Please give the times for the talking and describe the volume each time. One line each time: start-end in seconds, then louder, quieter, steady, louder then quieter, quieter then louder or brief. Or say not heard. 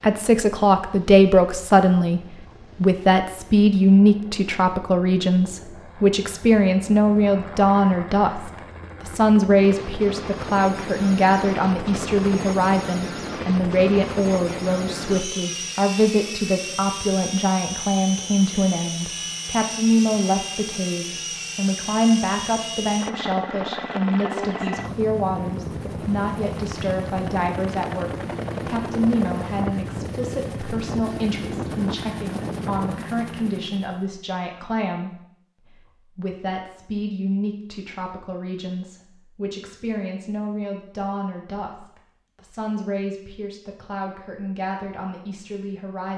0.0-46.1 quieter.